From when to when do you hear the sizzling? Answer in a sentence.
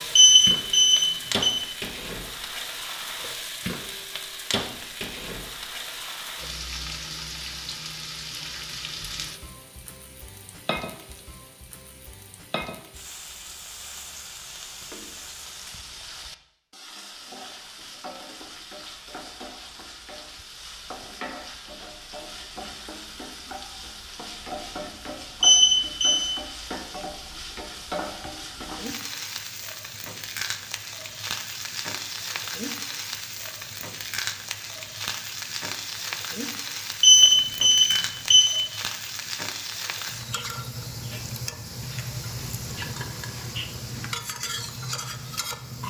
The sizzling can be heard from 0.0 to 45.8 s.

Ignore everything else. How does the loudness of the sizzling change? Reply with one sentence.
The loudness of the sizzling goes down, then up.